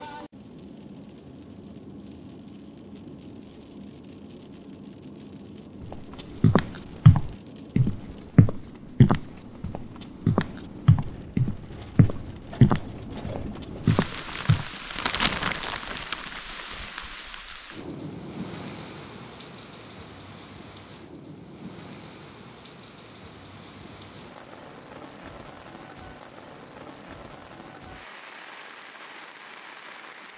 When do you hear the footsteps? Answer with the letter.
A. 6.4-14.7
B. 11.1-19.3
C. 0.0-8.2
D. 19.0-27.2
A.